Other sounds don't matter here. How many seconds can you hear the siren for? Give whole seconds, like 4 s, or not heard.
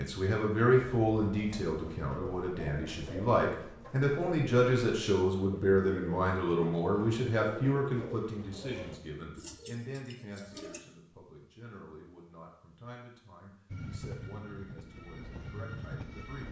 not heard.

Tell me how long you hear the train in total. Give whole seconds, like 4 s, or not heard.
3 s.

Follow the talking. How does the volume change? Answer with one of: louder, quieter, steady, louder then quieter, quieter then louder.
quieter.